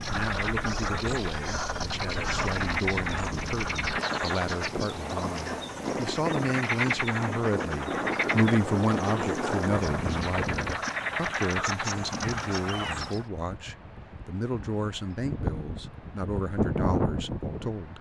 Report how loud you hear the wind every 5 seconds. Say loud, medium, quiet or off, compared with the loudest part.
medium, loud, medium, loud.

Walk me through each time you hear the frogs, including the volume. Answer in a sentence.
You can hear the frogs from 0.0 to 13.2 s, at a steady volume.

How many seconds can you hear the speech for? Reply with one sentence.
The speech can be heard for 18 seconds in total.